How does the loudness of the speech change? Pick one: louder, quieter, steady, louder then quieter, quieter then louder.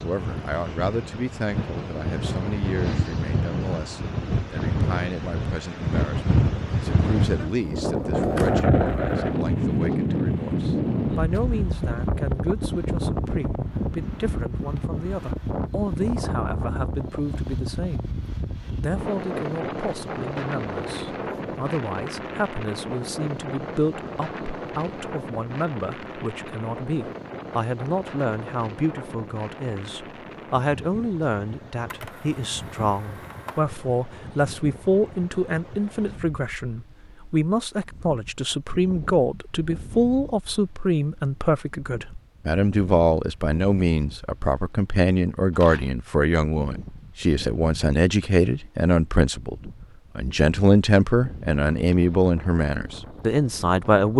louder.